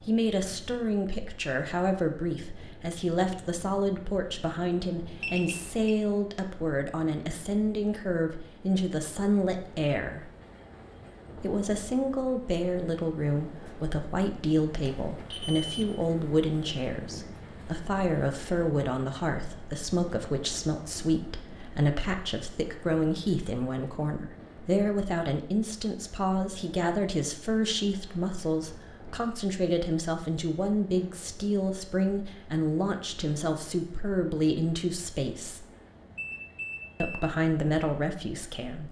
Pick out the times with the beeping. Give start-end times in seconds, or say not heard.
5.2-6.0, 14.8-15.9, 36.1-37.2.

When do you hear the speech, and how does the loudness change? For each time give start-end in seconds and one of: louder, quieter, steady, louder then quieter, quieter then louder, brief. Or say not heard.
0.0-10.3 steady
11.4-35.6 steady
37.0-38.8 brief.